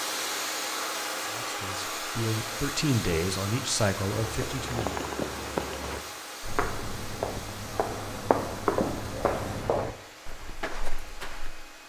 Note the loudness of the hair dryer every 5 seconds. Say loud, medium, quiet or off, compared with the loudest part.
loud, medium, quiet.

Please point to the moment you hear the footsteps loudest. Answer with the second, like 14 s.
9 s.